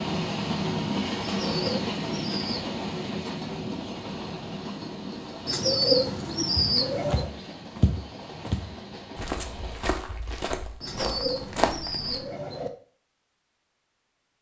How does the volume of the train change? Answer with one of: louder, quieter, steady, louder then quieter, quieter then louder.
quieter.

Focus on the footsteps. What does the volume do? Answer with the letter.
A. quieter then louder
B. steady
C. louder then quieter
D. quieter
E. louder
A.